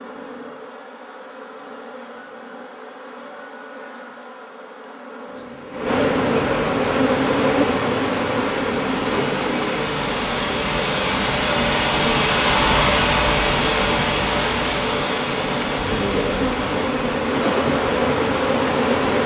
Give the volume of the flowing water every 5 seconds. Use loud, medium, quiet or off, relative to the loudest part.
off, medium, loud, medium.